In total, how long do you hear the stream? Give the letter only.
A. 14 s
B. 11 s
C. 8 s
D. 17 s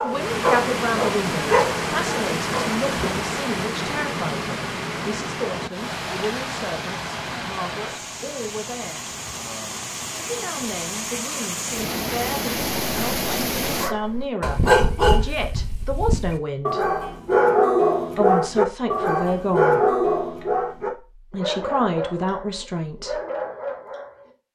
A.